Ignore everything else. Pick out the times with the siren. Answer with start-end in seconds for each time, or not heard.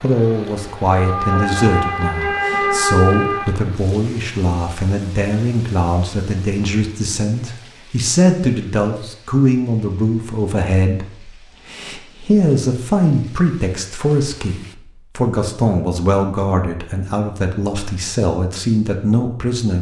0.0-3.5.